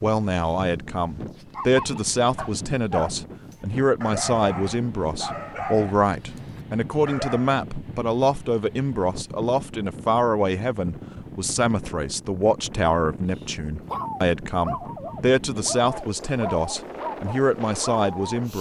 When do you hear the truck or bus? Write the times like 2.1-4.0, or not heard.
not heard.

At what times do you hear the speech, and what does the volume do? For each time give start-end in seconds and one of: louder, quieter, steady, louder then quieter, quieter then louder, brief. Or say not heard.
0.0-18.5 steady.